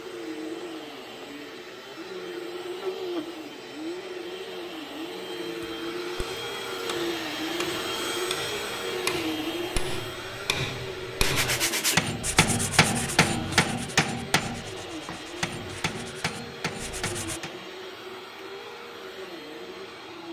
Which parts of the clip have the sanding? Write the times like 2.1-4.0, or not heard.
11.2-17.4.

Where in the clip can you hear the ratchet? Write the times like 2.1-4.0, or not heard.
not heard.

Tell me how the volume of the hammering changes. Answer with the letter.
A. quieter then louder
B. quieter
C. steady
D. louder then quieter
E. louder
D.